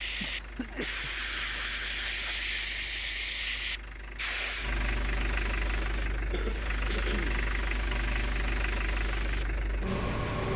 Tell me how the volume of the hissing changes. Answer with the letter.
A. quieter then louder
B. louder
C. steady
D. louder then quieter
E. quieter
E.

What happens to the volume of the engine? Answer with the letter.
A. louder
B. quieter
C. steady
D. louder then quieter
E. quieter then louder
A.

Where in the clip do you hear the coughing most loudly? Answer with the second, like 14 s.
7 s.